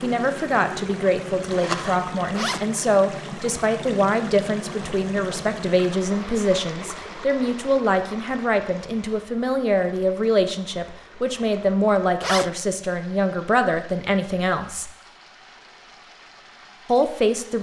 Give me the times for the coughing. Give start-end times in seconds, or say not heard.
not heard.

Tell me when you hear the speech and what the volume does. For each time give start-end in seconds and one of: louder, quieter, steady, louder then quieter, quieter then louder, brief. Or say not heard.
0.0-14.9 steady
16.9-17.5 brief.